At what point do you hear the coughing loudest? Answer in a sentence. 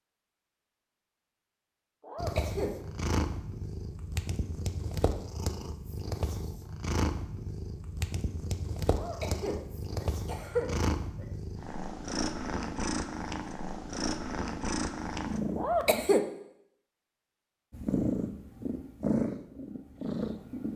The loudest moment of the coughing is at 16 seconds.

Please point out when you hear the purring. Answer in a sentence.
The purring can be heard from 2.1 to 16.1 s and from 17.7 to 20.7 s.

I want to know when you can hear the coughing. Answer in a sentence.
You can hear the coughing from 2.0 to 2.8 s, from 8.9 to 11.2 s and from 15.6 to 16.2 s.